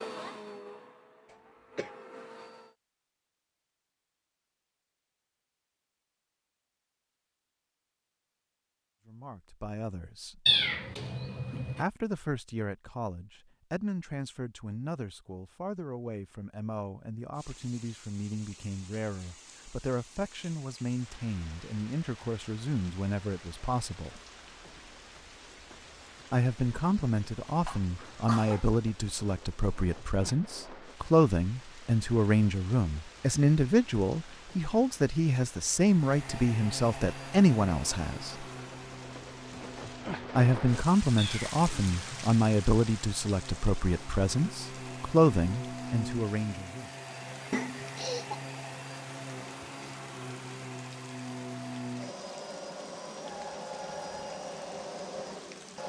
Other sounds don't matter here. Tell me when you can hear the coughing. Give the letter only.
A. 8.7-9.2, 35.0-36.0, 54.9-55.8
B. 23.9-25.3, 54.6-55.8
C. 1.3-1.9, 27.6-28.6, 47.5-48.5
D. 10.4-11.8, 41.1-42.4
C.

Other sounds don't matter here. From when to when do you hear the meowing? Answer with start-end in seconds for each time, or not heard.
10.4-11.8, 41.1-42.4.